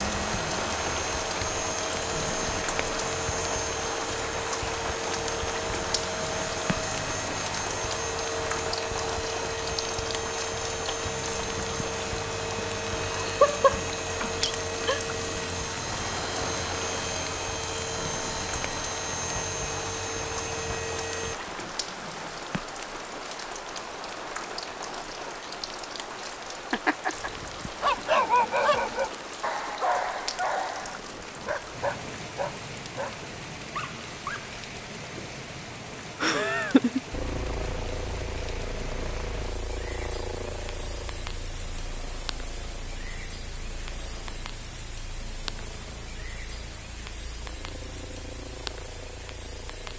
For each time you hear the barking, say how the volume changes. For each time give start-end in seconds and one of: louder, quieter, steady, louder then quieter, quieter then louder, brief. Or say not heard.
27.8-34.5 quieter.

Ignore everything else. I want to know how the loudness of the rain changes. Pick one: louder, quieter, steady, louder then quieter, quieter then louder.
quieter.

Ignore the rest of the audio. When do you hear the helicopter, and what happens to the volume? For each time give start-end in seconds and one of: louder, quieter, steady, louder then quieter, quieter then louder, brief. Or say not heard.
0.0-21.4 steady
37.1-49.9 quieter.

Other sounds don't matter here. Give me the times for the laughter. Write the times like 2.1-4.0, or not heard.
12.9-15.0, 26.7-27.3, 36.2-37.0.